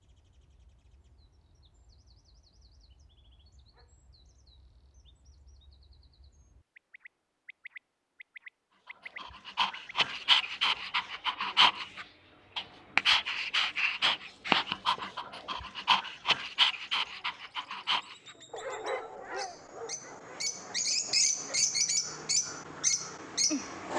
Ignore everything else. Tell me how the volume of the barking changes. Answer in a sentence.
The volume of the barking goes down.